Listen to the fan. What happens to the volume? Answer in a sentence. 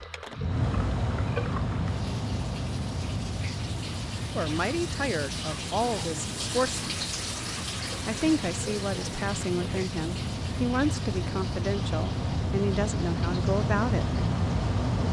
The loudness of the fan goes down, then up.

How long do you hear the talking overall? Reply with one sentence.
You can hear the talking for 9 seconds altogether.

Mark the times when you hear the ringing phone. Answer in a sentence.
The ringing phone can't be heard in this clip.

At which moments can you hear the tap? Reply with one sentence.
The tap can be heard from 0.0 to 15.0 s.